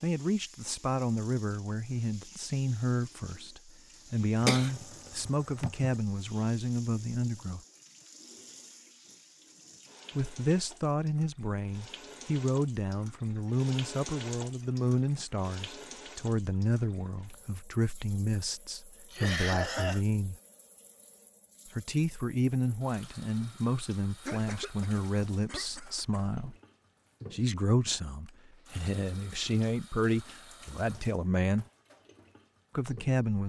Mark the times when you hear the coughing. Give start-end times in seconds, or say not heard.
4.4-6.0, 19.1-20.0, 24.2-26.2.